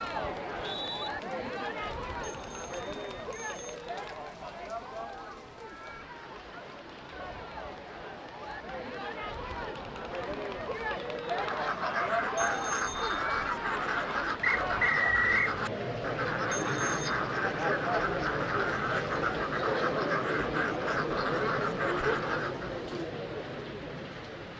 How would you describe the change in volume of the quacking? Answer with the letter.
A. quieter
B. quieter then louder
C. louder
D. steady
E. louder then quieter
D.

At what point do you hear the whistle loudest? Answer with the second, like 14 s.
15 s.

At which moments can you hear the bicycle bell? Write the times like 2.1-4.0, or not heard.
2.2-3.8, 12.3-13.2, 16.5-17.1.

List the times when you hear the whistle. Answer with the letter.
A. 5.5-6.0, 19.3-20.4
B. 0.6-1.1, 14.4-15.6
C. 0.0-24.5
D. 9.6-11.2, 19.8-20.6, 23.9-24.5
B.